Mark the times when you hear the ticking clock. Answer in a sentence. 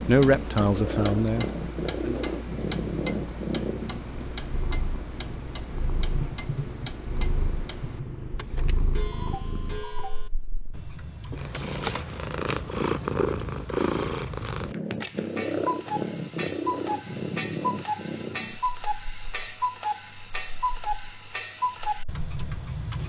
The ticking clock can be heard from 0.0 to 23.0 s.